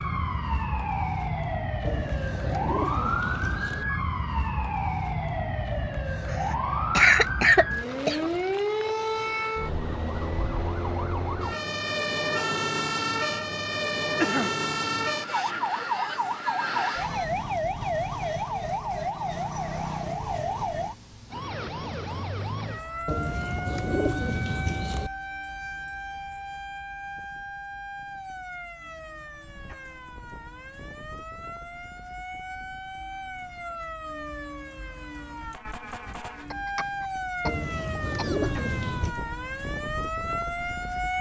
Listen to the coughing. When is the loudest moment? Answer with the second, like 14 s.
7 s.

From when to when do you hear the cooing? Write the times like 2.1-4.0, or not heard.
1.8-3.9, 23.1-25.1, 37.5-39.1.